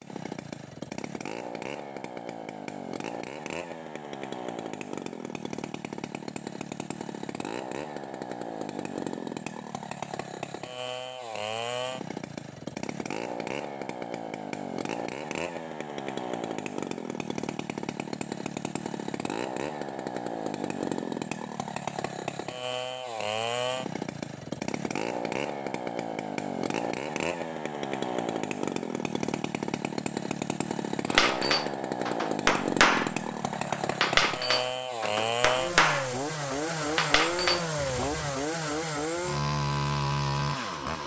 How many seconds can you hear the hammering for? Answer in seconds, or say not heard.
7 s.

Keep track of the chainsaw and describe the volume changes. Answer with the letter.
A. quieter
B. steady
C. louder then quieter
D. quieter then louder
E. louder
E.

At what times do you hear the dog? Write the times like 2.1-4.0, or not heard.
not heard.